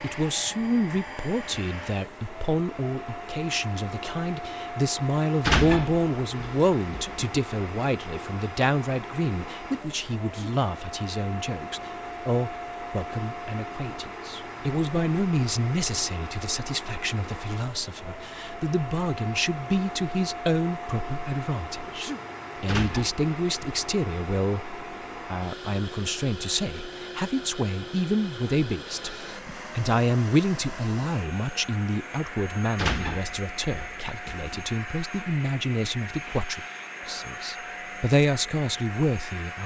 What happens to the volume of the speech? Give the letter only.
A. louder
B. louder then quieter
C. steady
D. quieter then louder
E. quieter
C.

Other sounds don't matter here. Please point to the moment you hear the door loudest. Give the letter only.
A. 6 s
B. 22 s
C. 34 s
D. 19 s
A.